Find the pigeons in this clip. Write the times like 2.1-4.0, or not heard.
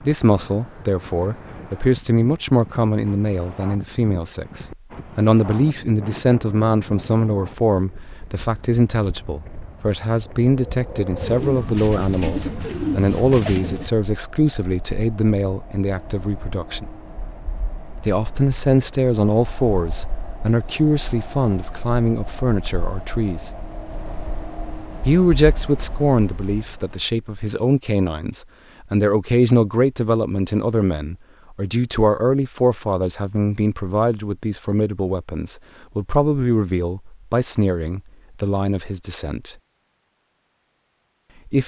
11.2-13.9.